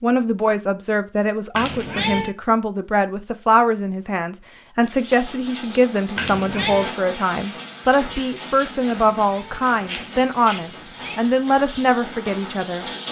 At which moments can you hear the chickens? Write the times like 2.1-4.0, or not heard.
not heard.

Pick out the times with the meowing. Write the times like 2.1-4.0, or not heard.
1.5-2.3, 6.2-7.0, 9.1-11.2.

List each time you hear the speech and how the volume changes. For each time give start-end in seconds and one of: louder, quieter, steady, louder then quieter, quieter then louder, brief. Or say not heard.
0.0-12.8 steady.